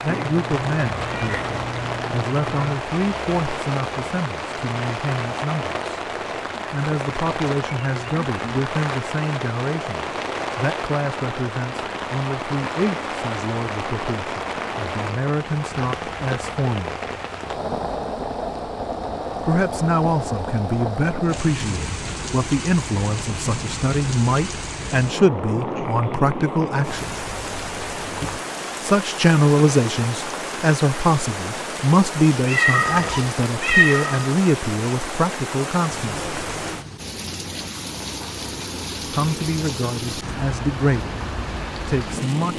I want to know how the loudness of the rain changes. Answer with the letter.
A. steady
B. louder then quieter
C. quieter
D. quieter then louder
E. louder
A.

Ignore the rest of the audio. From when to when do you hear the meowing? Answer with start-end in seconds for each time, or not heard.
0.1-2.8, 32.5-34.3.